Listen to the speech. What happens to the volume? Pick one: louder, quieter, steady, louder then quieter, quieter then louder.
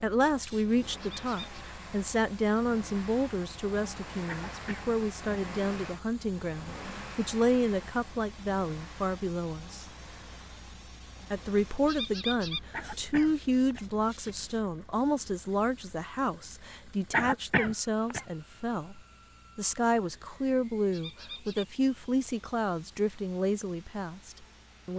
steady.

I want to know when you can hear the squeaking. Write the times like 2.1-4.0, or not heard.
1.0-1.6, 11.8-12.6, 20.9-21.6.